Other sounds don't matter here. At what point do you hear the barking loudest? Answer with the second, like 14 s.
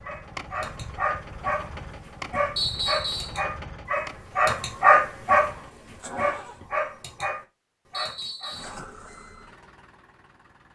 5 s.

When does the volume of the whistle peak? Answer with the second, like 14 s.
3 s.